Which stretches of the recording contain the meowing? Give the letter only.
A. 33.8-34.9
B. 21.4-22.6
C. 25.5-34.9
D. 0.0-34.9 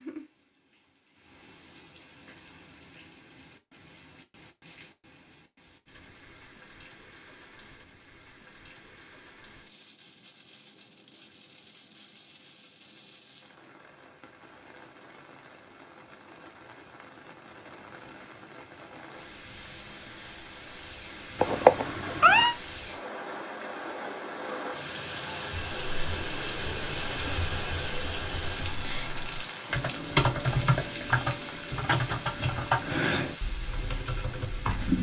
B.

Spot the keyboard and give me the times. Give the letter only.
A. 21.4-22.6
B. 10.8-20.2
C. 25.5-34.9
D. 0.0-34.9
C.